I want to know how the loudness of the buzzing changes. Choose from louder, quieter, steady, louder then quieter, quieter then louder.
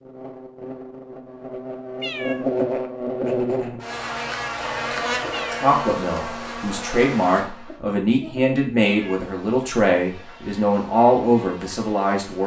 quieter.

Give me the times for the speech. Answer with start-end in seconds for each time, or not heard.
5.6-12.4.